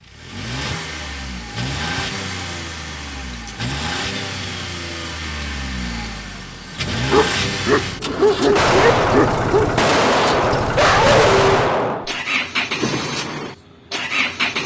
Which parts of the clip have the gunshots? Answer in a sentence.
You can hear the gunshots from 8.6 to 12.1 s.